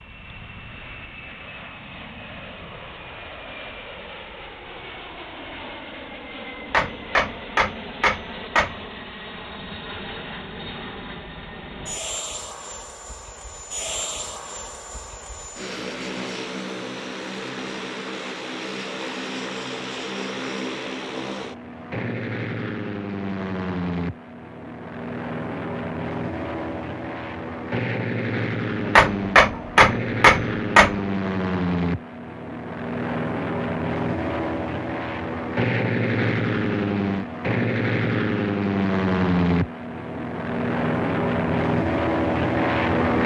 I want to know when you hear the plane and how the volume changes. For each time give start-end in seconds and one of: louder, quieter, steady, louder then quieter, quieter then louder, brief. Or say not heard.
0.0-43.2 louder.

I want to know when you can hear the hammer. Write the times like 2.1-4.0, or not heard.
6.6-8.8, 28.9-31.0.